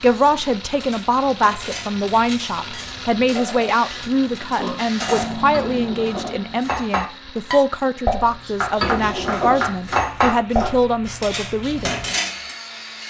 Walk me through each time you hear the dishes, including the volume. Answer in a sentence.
The dishes can be heard from 0.8 to 12.6 s, getting louder.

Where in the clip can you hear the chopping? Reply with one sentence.
You can hear the chopping from 8.6 to 10.8 s.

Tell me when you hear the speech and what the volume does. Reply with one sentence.
The speech can be heard from 0.0 to 11.9 s, at a steady volume.